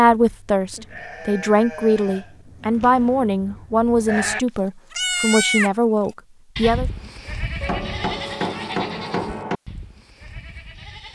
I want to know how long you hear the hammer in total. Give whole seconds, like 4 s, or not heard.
2 s.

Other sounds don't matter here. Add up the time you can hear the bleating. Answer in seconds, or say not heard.
10 s.